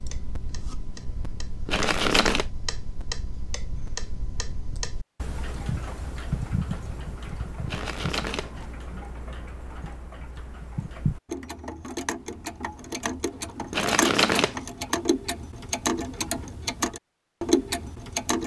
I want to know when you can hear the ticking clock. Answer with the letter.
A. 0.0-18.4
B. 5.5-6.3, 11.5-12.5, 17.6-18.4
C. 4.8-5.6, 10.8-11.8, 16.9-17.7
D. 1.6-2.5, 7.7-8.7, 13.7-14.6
A.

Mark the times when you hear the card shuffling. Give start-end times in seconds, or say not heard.
1.6-2.5, 7.7-8.7, 13.7-14.6.